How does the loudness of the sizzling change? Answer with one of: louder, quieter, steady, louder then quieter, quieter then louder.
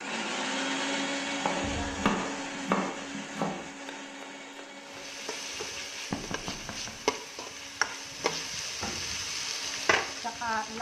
louder.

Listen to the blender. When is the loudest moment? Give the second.
1 s.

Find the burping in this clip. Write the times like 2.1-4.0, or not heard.
not heard.